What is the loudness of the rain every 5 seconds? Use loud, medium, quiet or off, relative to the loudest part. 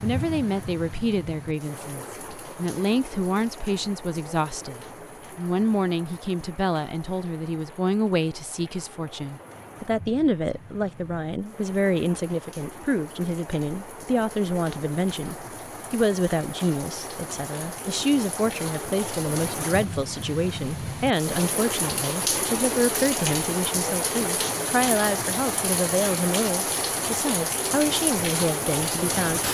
medium, quiet, quiet, medium, loud, loud.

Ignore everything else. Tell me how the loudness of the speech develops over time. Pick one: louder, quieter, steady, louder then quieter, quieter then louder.
steady.